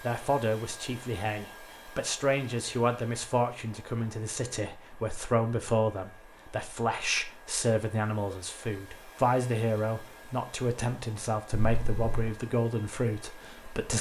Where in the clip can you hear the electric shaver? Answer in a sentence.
The electric shaver can't be heard in this clip.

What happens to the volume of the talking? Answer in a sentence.
The loudness of the talking stays about the same.